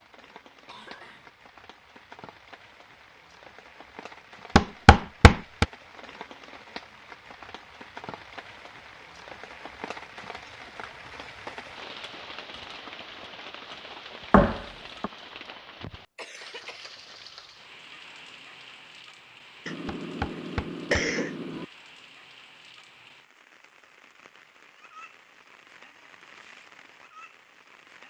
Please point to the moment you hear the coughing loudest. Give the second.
21 s.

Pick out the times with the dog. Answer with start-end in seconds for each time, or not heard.
not heard.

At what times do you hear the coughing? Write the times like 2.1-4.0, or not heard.
0.7-1.3, 16.1-16.9, 19.6-21.6.